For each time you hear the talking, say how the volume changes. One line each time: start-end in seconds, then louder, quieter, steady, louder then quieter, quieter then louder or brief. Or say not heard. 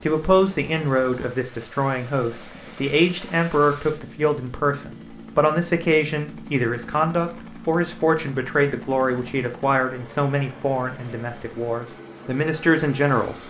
0.0-13.3 steady.